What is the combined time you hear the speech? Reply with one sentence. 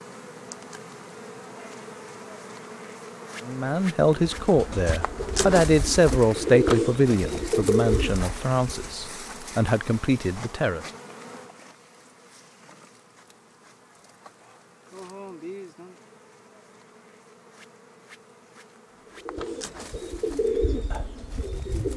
You can hear the speech for 7 seconds altogether.